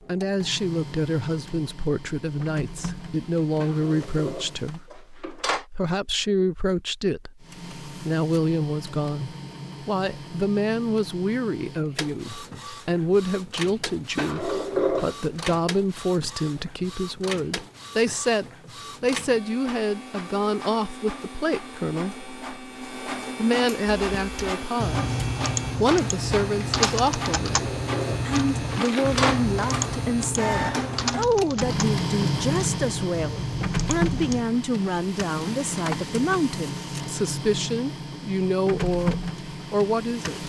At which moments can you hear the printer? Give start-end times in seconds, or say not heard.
0.0-4.8, 7.4-40.4.